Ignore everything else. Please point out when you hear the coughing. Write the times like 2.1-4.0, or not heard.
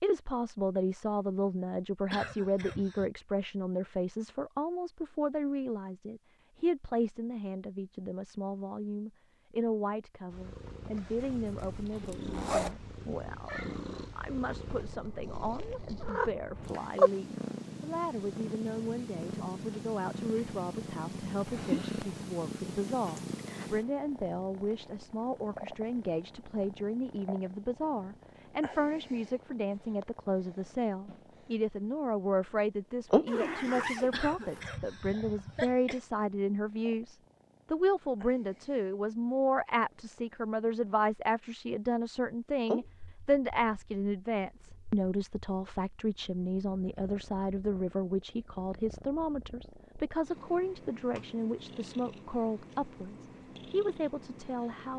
2.1-3.1, 34.1-36.0.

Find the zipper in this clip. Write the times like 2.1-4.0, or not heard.
11.4-12.8, 33.2-34.6.